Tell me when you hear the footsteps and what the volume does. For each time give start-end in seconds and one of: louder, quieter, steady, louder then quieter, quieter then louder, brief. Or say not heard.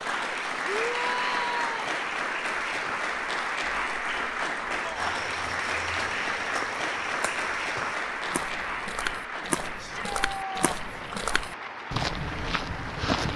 5.0-13.3 louder.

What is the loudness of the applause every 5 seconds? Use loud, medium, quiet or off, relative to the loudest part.
loud, loud, medium.